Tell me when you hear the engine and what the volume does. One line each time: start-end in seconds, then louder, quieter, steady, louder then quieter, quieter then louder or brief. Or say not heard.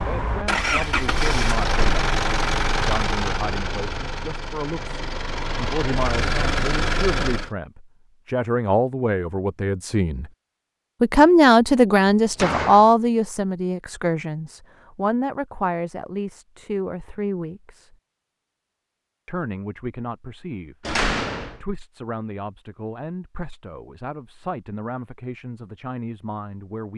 0.0-7.5 quieter then louder.